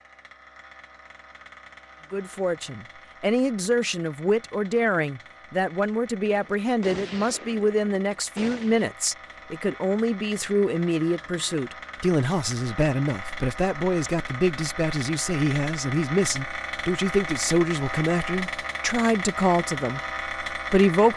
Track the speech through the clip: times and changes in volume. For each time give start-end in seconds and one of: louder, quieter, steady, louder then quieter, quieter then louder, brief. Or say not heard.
2.1-21.1 steady.